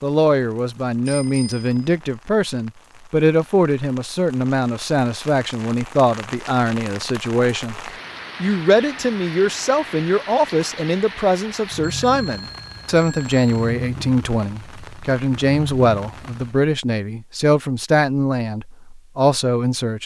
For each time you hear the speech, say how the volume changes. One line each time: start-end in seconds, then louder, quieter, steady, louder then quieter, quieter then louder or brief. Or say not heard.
0.0-7.8 steady
8.4-20.0 steady.